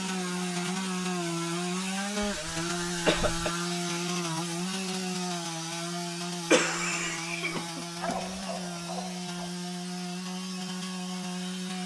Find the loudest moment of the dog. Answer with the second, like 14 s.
8 s.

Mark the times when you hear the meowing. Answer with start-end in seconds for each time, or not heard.
not heard.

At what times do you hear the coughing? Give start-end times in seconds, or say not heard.
2.2-3.5, 6.5-8.2.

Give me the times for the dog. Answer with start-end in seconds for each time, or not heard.
8.0-9.5.